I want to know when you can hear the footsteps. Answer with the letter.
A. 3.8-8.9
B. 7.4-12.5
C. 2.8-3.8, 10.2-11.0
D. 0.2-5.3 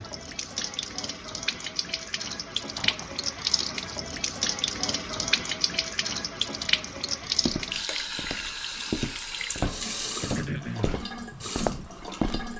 B.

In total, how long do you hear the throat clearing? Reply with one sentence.
The throat clearing can be heard for 2 seconds in total.